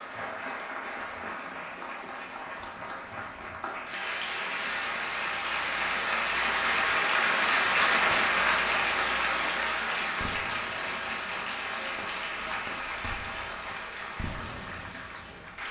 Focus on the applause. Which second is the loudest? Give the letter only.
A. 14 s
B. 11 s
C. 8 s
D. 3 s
C.